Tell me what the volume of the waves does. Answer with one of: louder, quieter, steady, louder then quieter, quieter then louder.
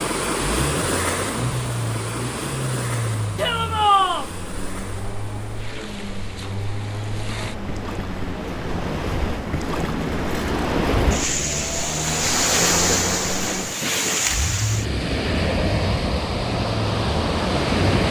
quieter then louder.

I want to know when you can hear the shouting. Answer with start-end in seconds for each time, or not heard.
3.4-4.3.